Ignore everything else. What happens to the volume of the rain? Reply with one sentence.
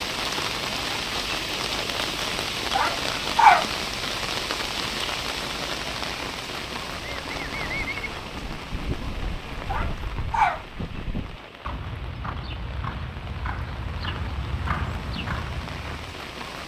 The volume of the rain goes down.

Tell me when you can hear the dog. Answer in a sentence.
The dog can be heard from 2.7 to 3.6 s and from 9.7 to 10.6 s.